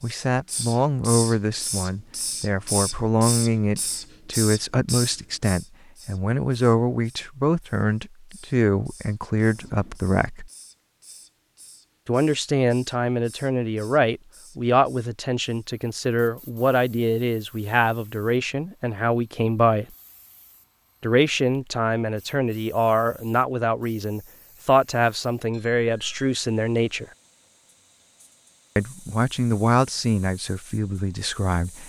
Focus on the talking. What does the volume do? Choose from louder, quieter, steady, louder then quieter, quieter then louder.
steady.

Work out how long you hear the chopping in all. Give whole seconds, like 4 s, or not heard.
not heard.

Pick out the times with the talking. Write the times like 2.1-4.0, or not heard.
0.0-10.5, 12.1-19.9, 21.0-27.1, 28.8-31.8.